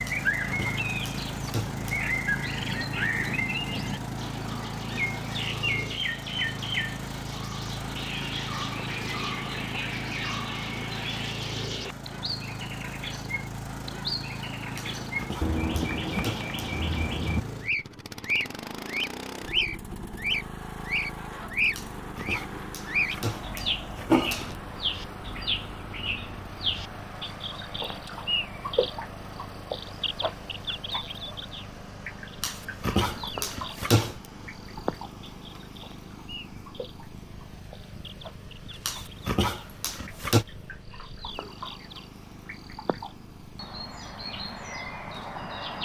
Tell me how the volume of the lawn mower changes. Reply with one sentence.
The loudness of the lawn mower goes down.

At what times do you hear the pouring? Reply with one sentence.
The pouring can't be heard in this clip.